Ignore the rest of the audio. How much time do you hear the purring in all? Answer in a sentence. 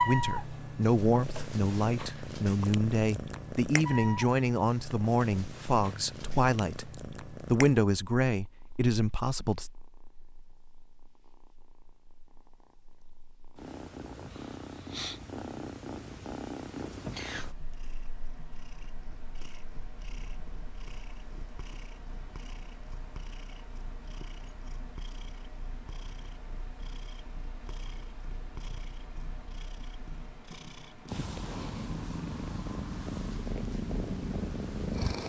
The purring can be heard for 35 seconds in total.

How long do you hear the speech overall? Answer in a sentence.
You can hear the speech for 10 seconds altogether.